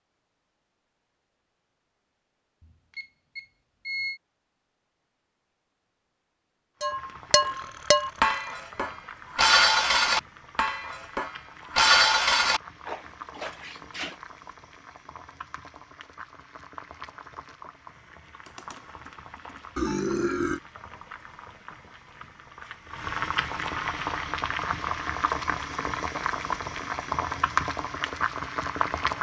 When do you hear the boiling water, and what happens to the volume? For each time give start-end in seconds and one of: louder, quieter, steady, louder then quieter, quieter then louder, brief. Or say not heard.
6.8-29.1 louder.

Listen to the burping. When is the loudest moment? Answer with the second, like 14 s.
20 s.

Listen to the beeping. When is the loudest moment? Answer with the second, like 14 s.
4 s.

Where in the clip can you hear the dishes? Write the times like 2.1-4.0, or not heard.
6.8-14.2.